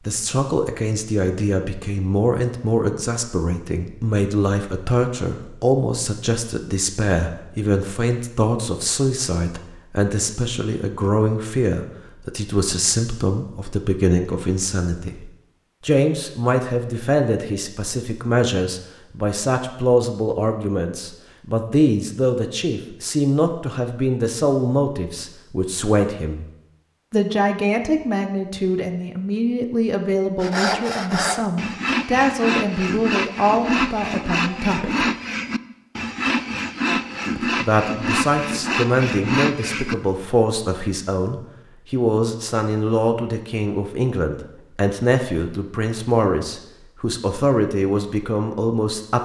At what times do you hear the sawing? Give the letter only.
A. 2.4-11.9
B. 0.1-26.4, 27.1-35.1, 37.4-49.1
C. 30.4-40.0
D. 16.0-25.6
C.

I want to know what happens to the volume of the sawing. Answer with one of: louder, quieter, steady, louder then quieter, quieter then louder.
steady.